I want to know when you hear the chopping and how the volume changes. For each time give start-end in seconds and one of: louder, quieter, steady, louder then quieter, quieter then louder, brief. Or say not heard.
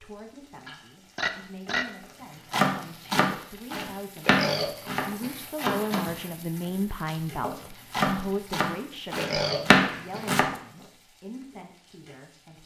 2.5-10.6 quieter then louder.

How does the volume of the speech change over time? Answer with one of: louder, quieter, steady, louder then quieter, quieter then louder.
louder then quieter.